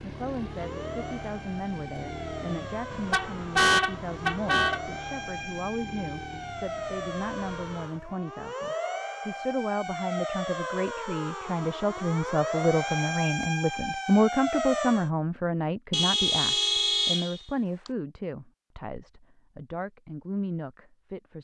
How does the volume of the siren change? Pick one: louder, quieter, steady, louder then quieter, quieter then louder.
louder.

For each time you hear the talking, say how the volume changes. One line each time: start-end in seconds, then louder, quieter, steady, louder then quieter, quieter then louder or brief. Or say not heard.
0.0-21.3 louder then quieter.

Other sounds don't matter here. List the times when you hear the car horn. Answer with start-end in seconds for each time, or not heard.
2.9-4.8, 15.9-17.9.